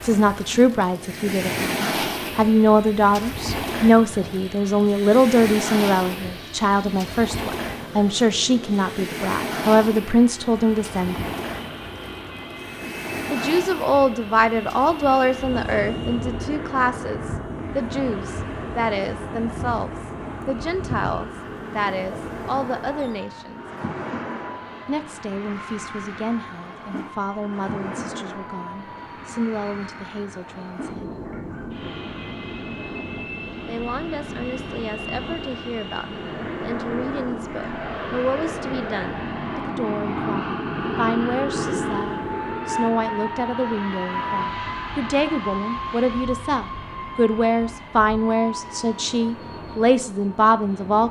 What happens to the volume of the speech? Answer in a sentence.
The loudness of the speech goes down, then up.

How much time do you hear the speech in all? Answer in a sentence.
The speech can be heard for 45 seconds in total.